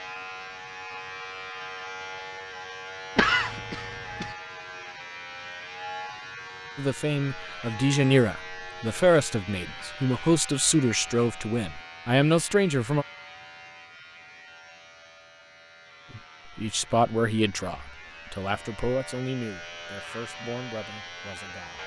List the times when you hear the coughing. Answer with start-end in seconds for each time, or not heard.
3.1-4.3.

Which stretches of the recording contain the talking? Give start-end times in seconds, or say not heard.
6.8-13.1, 16.1-21.8.